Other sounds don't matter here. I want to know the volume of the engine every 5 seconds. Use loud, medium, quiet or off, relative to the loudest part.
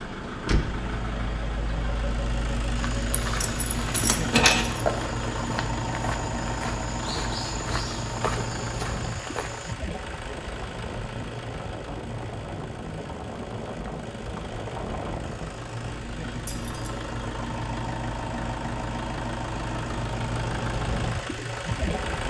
loud, loud, medium, loud, loud.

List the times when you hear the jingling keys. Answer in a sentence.
You can hear the jingling keys from 3.2 to 4.8 s and from 16.4 to 16.9 s.